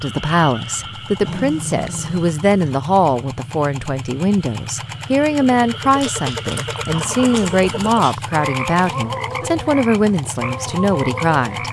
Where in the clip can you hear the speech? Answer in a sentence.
You can hear the speech from 0.0 to 11.6 s.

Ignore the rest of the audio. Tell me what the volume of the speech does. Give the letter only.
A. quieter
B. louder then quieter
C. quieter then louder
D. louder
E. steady
E.